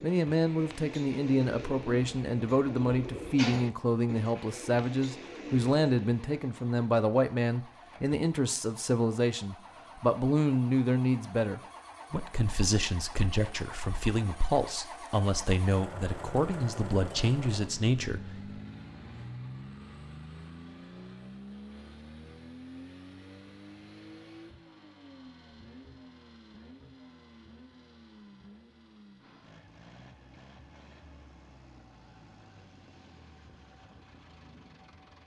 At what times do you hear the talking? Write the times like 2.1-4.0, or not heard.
0.0-18.2.